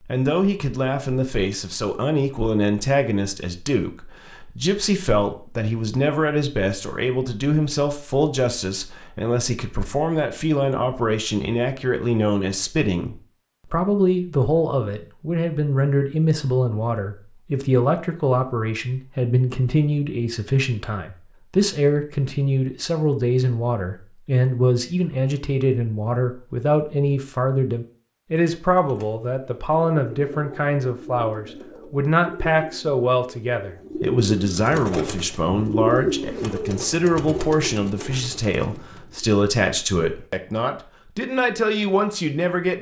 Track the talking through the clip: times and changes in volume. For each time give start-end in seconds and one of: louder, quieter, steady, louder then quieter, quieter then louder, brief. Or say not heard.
0.1-42.7 steady.